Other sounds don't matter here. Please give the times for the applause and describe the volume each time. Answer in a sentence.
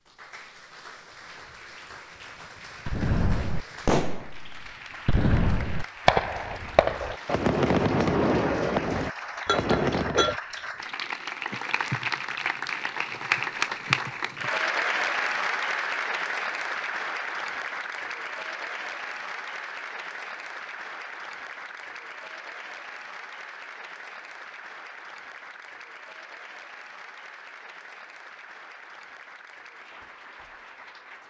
The applause can be heard from 0.0 to 31.2 s, getting louder then quieter.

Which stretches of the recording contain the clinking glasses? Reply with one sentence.
You can hear the clinking glasses from 9.4 to 10.3 s.